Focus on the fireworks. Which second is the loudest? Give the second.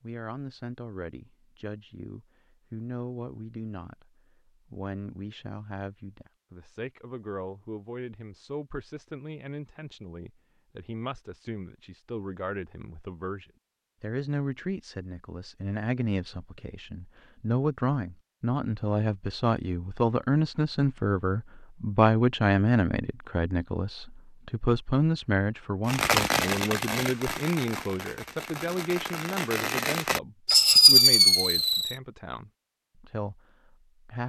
31 s.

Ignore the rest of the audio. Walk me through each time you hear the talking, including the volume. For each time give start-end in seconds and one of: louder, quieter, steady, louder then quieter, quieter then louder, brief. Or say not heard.
0.0-34.2 louder then quieter.